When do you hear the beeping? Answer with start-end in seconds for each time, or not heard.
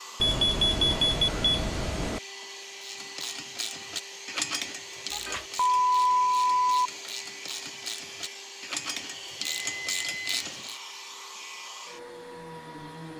0.2-2.2, 5.1-6.9, 9.4-10.4.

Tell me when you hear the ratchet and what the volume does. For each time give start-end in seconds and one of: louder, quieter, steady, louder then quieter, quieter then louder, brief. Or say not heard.
2.8-10.8 quieter then louder.